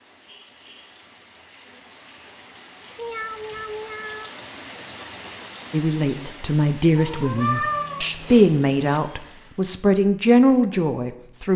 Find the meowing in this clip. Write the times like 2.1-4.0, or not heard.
3.0-4.3, 7.0-9.0.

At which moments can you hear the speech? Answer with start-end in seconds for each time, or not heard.
5.7-11.5.